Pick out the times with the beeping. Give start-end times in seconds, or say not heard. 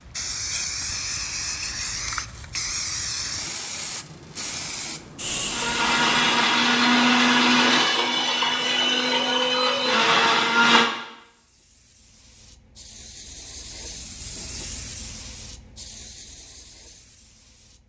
not heard.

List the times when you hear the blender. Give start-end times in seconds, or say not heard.
5.5-10.8.